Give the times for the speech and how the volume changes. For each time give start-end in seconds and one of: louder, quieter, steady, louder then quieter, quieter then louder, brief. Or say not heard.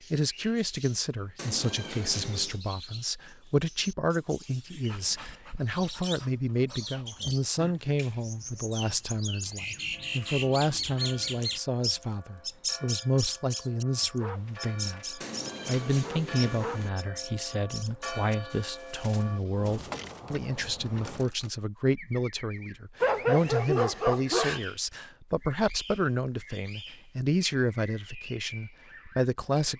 0.1-29.7 steady.